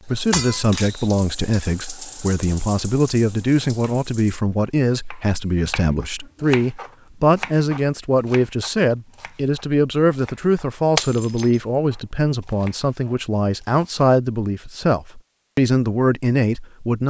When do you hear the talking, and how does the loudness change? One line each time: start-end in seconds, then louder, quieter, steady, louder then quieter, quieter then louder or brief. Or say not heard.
0.1-17.0 steady.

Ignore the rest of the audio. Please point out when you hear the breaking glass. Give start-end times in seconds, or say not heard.
0.3-1.1, 10.9-11.6.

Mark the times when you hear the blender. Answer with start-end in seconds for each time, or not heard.
not heard.